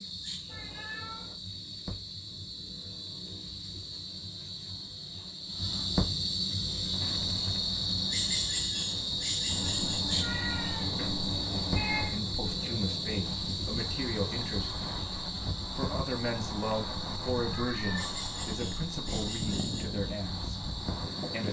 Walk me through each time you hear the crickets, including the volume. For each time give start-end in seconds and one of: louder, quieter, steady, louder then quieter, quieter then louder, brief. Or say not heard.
0.0-21.4 louder then quieter.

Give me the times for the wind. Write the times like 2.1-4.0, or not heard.
6.8-21.4.